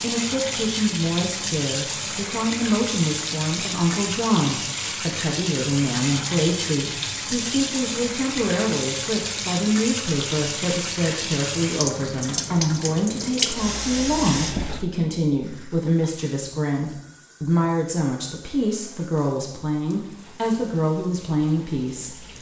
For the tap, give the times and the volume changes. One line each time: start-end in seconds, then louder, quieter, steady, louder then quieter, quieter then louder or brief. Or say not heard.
0.0-22.3 quieter.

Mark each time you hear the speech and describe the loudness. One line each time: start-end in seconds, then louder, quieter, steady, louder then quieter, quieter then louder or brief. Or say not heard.
0.0-22.3 steady.